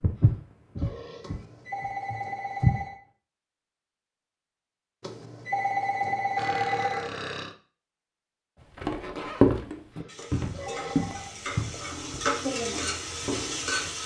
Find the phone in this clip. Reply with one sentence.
You can hear the phone from 1.2 to 3.0 s, from 5.0 to 7.0 s and from 10.2 to 11.3 s.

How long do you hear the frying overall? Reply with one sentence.
You can hear the frying for 4 seconds altogether.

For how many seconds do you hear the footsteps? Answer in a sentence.
The footsteps can be heard for 8 seconds in total.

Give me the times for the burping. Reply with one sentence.
You can hear the burping from 0.1 to 1.6 s, from 6.3 to 7.5 s and from 9.9 to 11.2 s.